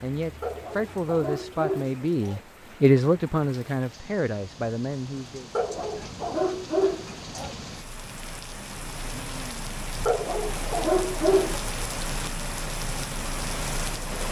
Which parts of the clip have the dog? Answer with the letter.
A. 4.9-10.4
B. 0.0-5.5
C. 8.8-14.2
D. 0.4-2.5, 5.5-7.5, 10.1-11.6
D.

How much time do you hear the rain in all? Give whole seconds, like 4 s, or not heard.
14 s.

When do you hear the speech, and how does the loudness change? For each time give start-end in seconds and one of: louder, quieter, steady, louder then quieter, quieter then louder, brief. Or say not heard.
0.0-5.5 louder then quieter.